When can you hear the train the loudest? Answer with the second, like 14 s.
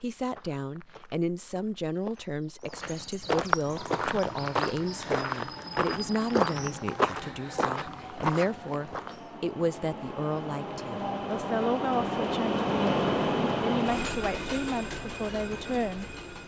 13 s.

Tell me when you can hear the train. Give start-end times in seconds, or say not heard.
3.6-16.4.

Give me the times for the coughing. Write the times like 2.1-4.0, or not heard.
not heard.